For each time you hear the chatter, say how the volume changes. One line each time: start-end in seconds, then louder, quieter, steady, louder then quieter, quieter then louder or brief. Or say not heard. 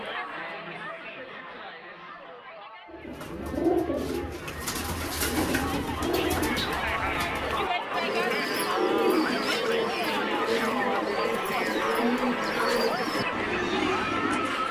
0.0-14.6 louder.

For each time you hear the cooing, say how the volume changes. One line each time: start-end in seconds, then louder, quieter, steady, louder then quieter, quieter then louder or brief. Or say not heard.
2.9-14.6 steady.